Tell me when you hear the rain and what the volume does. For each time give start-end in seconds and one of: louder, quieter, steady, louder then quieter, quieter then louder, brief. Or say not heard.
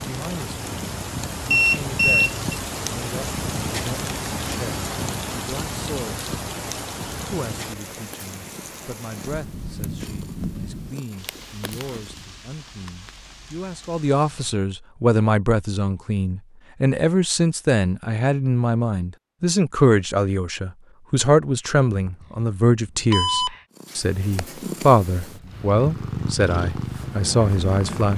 0.0-14.6 quieter.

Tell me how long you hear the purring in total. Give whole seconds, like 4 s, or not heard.
17 s.